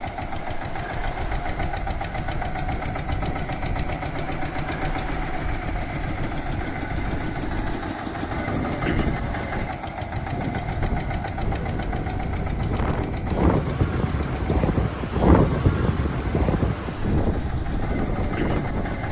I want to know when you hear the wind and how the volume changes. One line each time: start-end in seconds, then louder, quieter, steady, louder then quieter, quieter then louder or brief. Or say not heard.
0.2-19.0 louder.